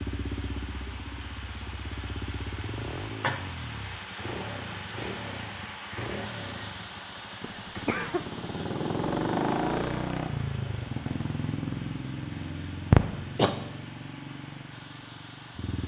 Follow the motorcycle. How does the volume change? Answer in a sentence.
The loudness of the motorcycle goes up, then down.